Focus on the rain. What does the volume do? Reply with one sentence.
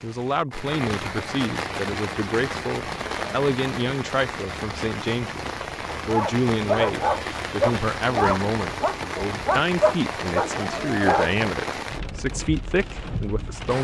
The volume of the rain stays about the same.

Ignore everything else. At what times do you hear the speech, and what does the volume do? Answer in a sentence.
You can hear the speech from 0.0 to 13.7 s, at a steady volume.